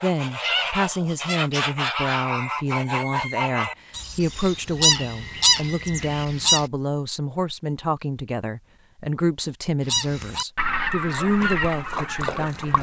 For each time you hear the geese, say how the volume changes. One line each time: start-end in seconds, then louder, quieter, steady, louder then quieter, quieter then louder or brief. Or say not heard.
0.0-6.7 steady
9.8-12.7 brief.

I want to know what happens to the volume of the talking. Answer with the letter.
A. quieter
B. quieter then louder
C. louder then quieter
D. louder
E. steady
E.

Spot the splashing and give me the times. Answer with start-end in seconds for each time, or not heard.
11.3-12.7.